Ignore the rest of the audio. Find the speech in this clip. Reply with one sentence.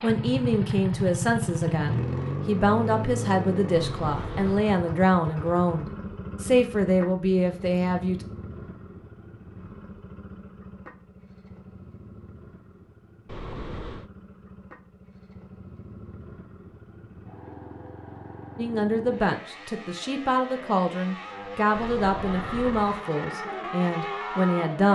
The speech can be heard from 0.0 to 8.2 s and from 18.6 to 24.9 s.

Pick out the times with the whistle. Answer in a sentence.
The whistle can't be heard in this clip.